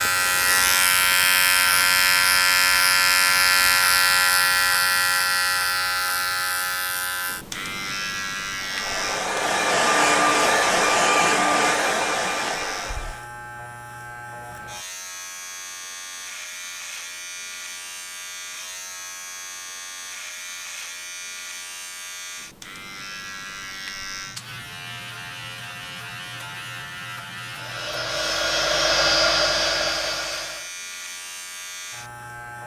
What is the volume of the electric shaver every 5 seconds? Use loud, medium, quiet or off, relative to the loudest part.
loud, medium, quiet, quiet, quiet, quiet, quiet.